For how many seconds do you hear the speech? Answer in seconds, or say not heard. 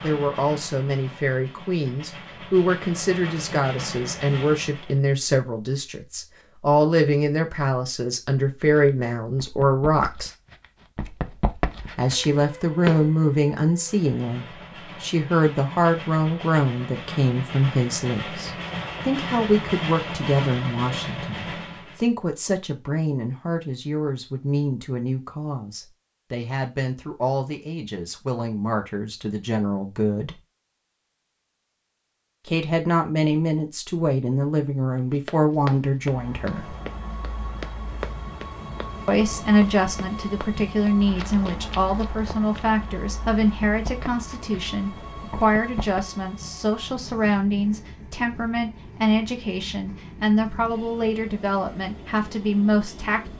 47 s.